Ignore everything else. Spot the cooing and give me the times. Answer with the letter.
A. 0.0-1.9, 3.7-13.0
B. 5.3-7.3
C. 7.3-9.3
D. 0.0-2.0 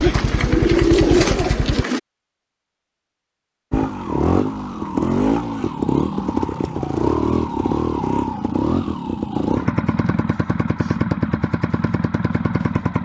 D.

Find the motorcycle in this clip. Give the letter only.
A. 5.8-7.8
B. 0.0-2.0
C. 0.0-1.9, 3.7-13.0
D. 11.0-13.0
C.